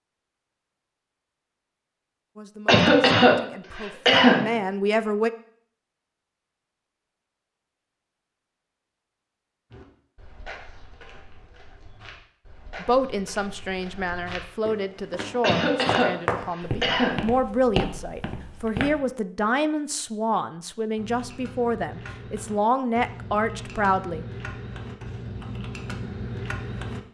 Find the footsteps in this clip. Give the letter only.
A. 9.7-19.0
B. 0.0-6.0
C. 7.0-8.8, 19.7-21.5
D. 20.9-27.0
A.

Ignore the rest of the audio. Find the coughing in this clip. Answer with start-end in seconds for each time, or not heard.
2.6-4.5, 15.4-17.2.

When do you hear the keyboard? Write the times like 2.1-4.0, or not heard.
20.9-27.0.